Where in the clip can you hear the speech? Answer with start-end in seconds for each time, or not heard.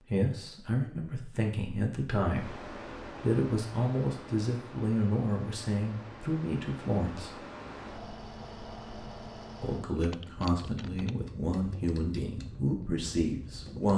0.1-7.3, 9.6-13.9.